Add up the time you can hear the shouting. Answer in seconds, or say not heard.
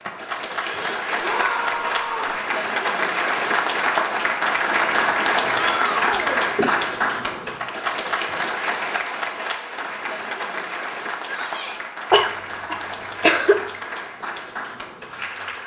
3 s.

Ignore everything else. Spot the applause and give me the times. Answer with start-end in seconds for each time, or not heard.
0.0-15.6.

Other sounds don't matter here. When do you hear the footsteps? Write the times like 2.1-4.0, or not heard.
not heard.